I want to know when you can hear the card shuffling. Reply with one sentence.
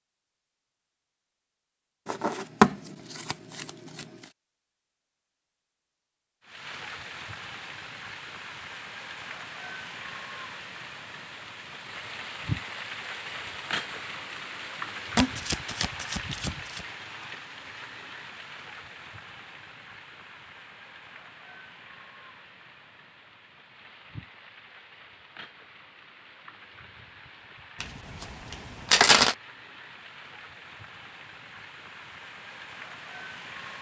You can hear the card shuffling from 2.0 to 4.0 s, from 15.2 to 16.8 s and from 27.8 to 29.4 s.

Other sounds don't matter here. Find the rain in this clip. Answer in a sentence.
You can hear the rain from 6.4 to 33.7 s.